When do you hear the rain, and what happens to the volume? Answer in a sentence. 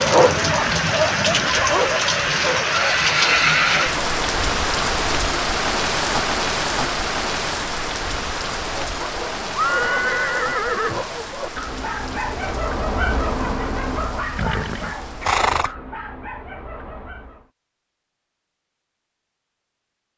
You can hear the rain from 0.0 to 15.3 s, getting quieter.